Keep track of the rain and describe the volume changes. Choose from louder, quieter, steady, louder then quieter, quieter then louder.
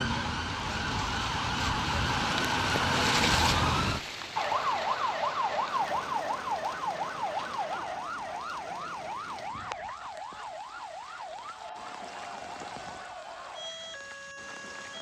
quieter.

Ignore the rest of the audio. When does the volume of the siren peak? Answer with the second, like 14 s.
3 s.